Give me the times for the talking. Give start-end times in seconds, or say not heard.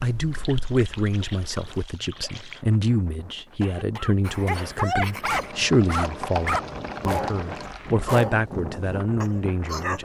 0.0-10.0.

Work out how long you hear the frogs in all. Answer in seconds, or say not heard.
not heard.